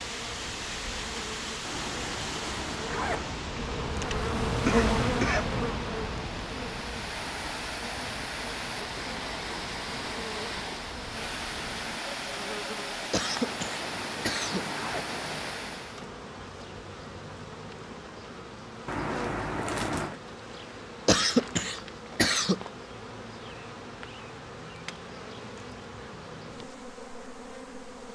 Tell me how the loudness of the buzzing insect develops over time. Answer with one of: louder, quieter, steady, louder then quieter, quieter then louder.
quieter.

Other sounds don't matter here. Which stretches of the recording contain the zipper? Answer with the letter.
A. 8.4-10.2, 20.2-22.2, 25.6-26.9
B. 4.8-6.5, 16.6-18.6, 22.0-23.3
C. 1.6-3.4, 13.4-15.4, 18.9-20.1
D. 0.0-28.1
C.